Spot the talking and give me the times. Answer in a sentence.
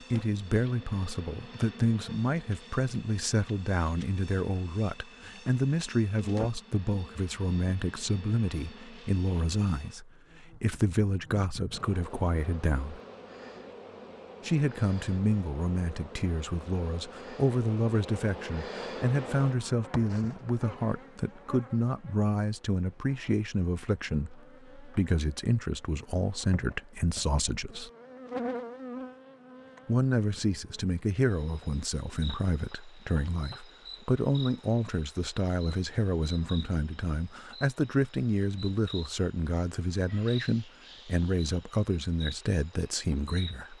You can hear the talking from 0.1 to 13.0 s, from 14.4 to 27.9 s and from 29.9 to 43.7 s.